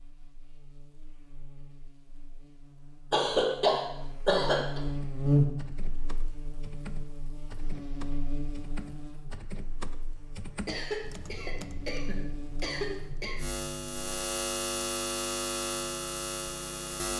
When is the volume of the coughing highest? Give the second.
4 s.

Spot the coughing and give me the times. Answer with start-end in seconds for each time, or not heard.
3.1-4.8, 10.7-13.4.